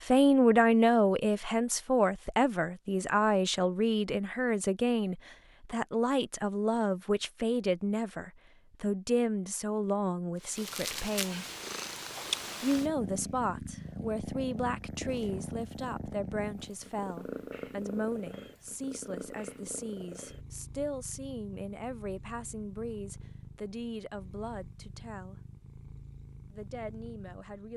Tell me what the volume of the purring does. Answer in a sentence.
The loudness of the purring goes down.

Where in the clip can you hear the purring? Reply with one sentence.
You can hear the purring from 10.4 to 27.7 s.